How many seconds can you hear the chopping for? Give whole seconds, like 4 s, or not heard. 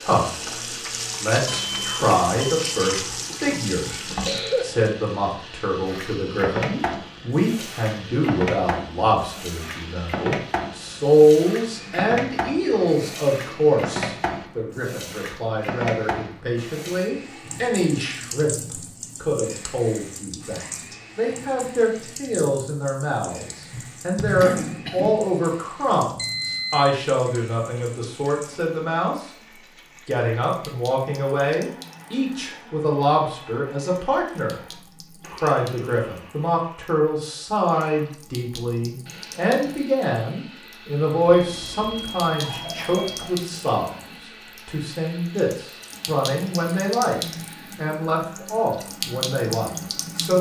not heard.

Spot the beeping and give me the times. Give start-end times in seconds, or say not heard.
1.4-3.0, 26.1-26.9, 41.2-43.3.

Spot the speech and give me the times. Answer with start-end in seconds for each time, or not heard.
0.0-0.6, 1.2-29.3, 30.1-44.0, 44.6-50.3.